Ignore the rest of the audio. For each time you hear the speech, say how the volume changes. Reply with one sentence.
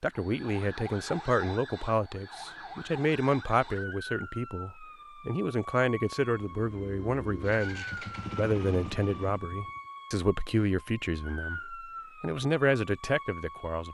The speech can be heard from 0.0 to 13.8 s, at a steady volume.